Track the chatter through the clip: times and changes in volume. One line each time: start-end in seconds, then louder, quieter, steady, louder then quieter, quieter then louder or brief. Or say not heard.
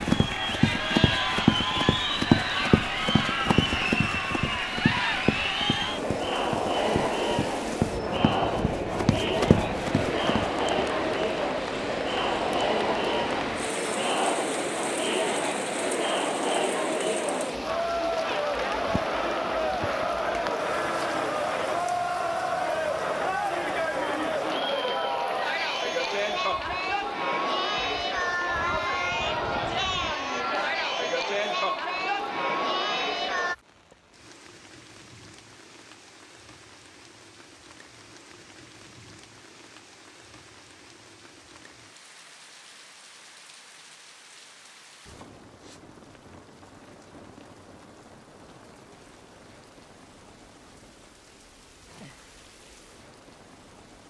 0.0-33.5 steady.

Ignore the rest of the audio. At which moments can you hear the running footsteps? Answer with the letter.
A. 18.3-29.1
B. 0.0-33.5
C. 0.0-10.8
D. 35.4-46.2
C.